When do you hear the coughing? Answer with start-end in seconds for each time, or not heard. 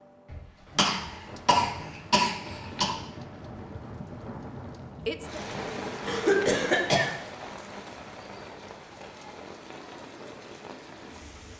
0.3-2.9, 6.0-7.1.